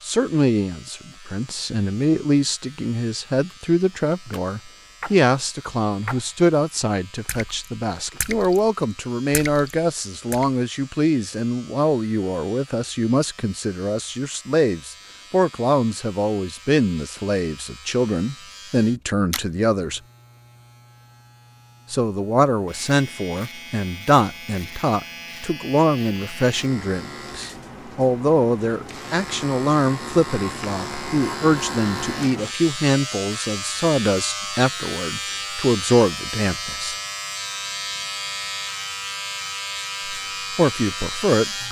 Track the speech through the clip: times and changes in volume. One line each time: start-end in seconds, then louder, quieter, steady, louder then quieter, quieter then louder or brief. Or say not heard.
0.0-20.0 steady
21.9-37.0 steady
40.0-41.6 brief.